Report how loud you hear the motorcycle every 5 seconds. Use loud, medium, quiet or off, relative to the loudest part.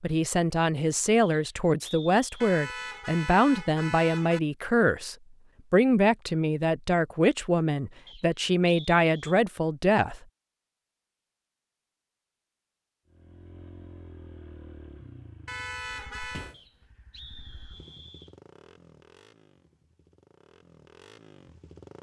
off, off, loud, loud, loud.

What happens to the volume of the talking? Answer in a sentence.
The volume of the talking stays about the same.